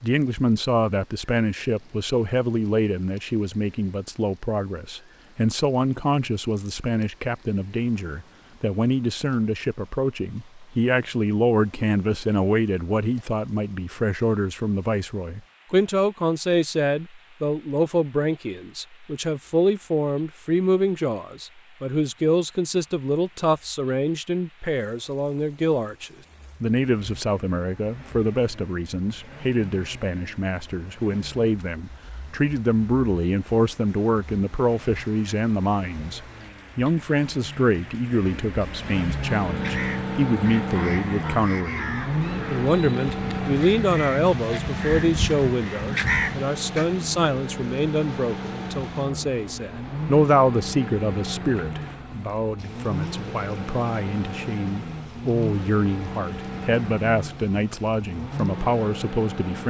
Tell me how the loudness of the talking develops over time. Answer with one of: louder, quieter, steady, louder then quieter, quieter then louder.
steady.